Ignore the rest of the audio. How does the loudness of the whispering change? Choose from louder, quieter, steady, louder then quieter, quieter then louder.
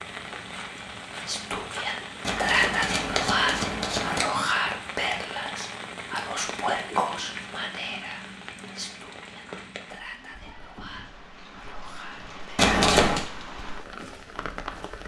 quieter.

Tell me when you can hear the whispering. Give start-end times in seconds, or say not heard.
1.2-12.7.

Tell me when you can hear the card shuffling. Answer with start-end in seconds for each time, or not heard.
2.2-4.2, 12.6-13.2.